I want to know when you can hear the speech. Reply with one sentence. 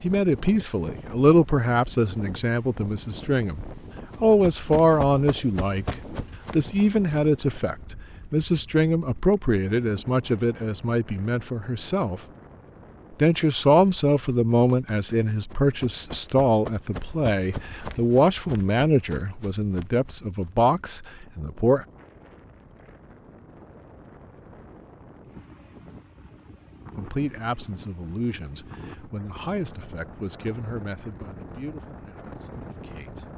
You can hear the speech from 0.0 to 12.2 s, from 13.2 to 21.9 s and from 26.9 to 33.2 s.